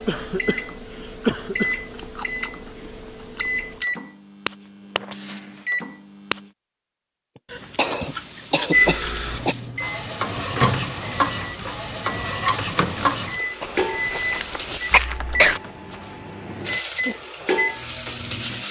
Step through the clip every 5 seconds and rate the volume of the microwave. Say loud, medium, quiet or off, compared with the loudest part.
medium, loud, medium, medium.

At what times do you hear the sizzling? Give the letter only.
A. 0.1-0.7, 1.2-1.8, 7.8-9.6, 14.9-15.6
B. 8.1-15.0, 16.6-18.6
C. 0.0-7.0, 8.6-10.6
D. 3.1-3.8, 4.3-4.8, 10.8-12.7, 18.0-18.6
B.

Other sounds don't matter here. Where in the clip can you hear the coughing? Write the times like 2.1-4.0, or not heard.
0.1-0.7, 1.2-1.8, 7.8-9.6, 14.9-15.6.